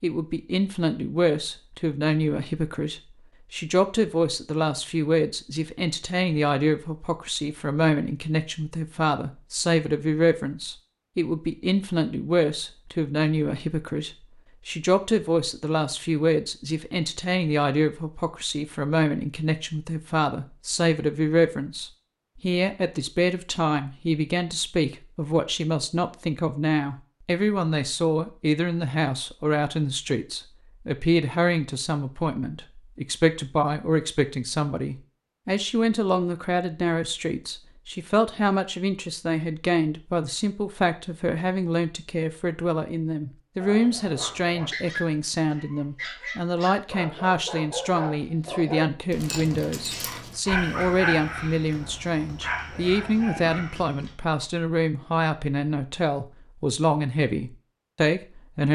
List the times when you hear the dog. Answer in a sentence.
The dog can be heard from 43.5 to 54.5 s.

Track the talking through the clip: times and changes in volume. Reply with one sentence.
The talking can be heard from 0.0 to 58.7 s, at a steady volume.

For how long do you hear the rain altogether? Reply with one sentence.
The rain can't be heard in this clip.